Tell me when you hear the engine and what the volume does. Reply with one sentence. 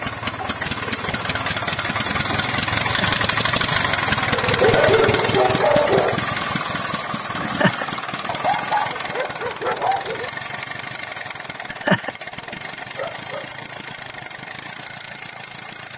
You can hear the engine from 0.0 to 15.9 s, getting quieter.